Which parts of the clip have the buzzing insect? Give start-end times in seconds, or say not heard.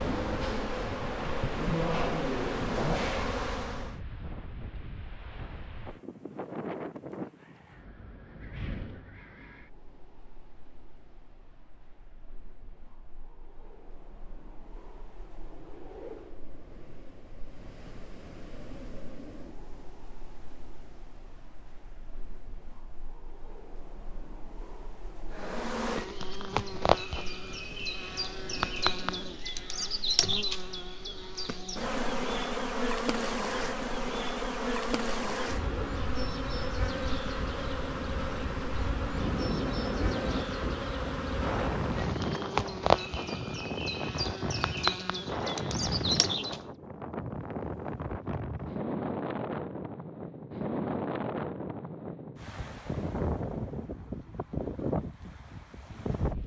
0.0-4.0, 25.3-46.6.